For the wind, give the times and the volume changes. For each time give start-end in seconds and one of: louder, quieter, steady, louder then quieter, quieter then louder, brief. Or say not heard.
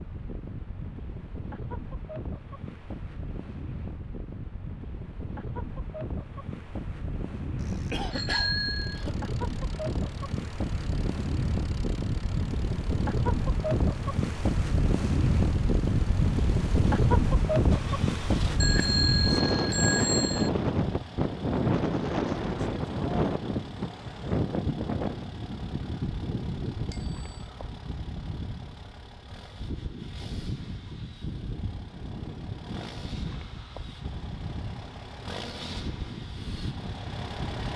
0.0-37.7 louder then quieter.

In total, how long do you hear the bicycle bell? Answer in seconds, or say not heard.
4 s.